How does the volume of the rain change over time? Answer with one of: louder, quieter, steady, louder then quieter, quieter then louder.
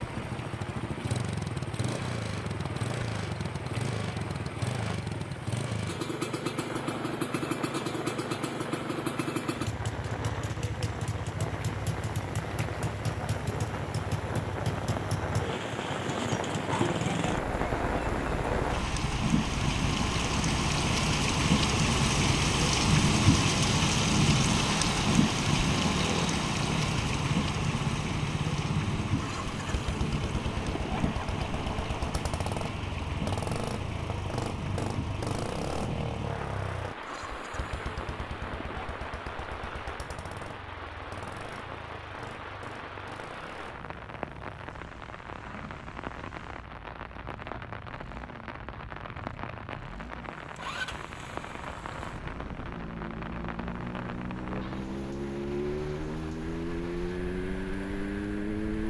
louder then quieter.